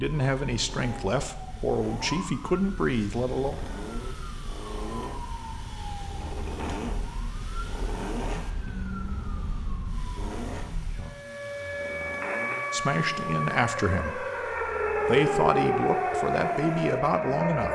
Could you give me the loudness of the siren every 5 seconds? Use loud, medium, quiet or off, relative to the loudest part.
quiet, quiet, medium, loud.